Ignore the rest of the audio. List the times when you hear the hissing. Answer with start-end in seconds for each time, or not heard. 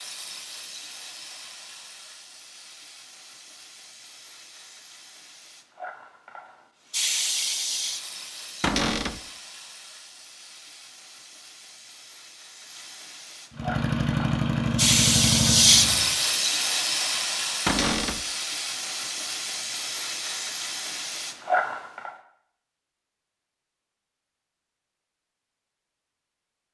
0.0-22.1.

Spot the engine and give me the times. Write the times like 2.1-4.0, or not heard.
13.5-16.1.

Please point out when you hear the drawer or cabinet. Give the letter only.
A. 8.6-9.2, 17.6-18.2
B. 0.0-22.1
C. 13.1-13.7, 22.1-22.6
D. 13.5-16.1
A.